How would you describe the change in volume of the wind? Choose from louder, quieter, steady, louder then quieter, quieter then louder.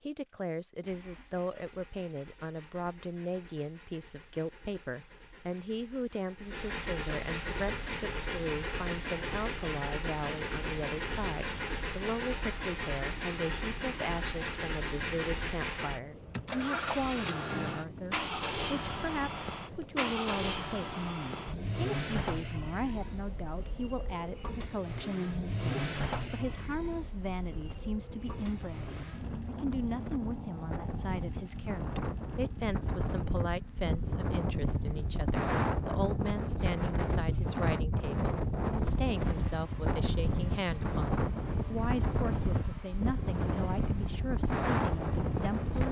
louder.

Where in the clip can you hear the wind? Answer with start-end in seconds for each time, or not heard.
7.6-45.8.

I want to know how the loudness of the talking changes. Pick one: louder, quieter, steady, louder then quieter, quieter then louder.
steady.